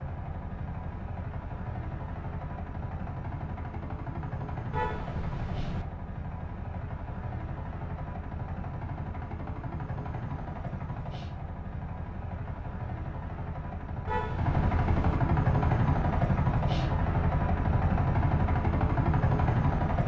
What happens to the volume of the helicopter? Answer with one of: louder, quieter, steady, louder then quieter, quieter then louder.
louder.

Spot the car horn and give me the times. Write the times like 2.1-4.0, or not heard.
4.7-5.8, 14.1-15.2.